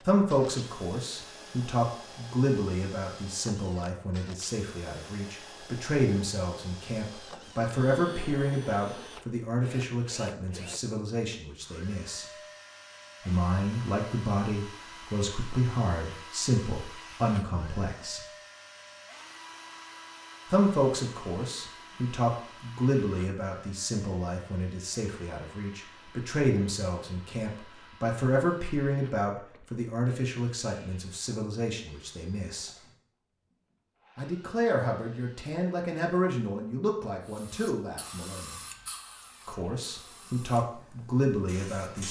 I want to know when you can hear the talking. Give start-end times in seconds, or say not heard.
0.0-12.2, 13.2-18.2, 20.5-32.7, 34.1-38.5, 39.5-42.0.